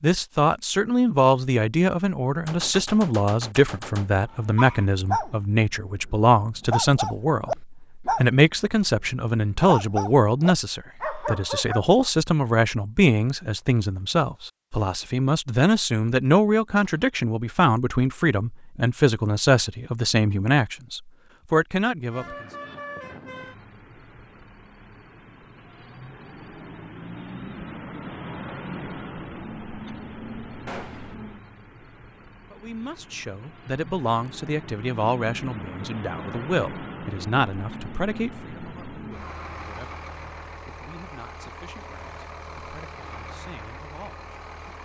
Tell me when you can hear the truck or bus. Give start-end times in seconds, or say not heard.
22.1-44.8.